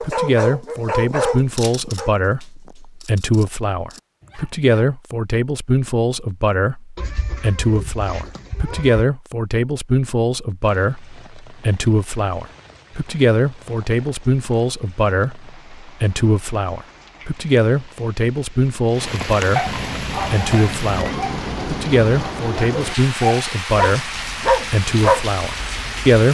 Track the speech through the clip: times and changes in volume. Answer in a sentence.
The speech can be heard from 0.0 to 26.2 s, at a steady volume.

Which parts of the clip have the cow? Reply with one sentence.
The cow can't be heard in this clip.